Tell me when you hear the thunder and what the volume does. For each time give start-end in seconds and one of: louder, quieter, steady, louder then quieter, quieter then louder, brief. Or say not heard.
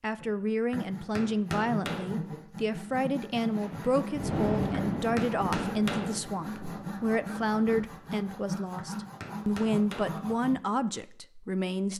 3.5-7.8 quieter.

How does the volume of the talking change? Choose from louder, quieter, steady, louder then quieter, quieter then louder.
steady.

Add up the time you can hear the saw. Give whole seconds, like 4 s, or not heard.
10 s.